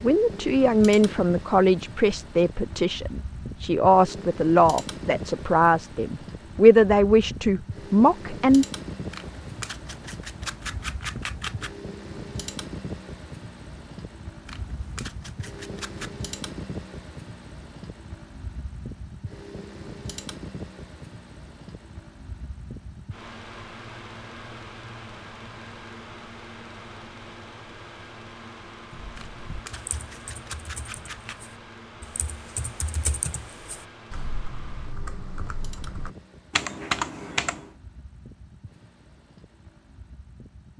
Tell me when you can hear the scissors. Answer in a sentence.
You can hear the scissors from 9.1 to 11.8 s, from 14.4 to 16.1 s and from 29.1 to 31.4 s.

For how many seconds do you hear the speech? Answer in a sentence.
The speech can be heard for 9 seconds in total.